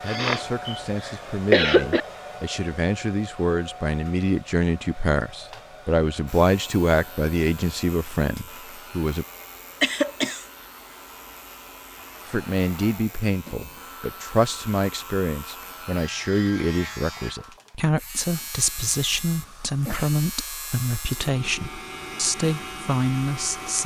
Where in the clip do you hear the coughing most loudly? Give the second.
2 s.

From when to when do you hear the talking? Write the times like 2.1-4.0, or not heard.
0.0-9.2, 12.2-23.8.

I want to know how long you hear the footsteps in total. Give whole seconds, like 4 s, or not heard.
not heard.